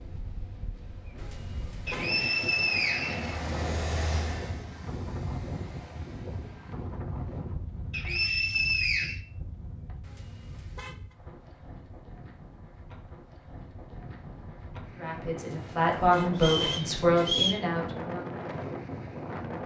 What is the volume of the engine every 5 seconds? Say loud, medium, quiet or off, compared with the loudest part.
loud, quiet, off, off.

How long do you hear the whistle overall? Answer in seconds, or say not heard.
4 s.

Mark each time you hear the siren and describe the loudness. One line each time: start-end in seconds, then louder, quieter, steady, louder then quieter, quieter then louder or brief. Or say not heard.
not heard.